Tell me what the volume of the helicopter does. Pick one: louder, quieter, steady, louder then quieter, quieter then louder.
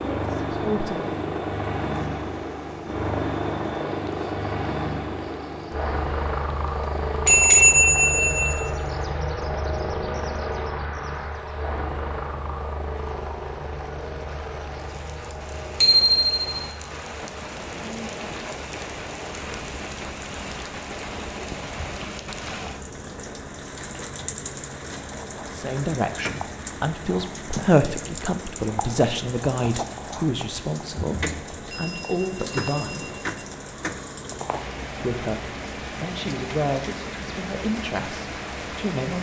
quieter.